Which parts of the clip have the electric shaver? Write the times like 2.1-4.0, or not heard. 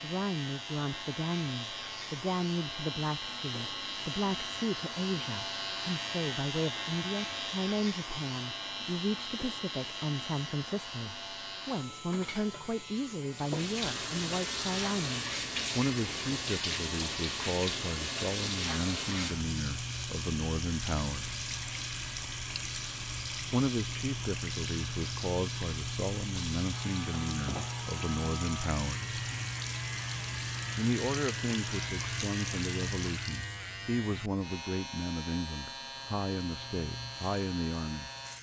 0.0-38.3.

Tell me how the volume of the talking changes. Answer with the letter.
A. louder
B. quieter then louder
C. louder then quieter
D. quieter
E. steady
E.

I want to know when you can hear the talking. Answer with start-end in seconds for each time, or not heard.
0.0-21.4, 23.5-29.1, 30.8-38.1.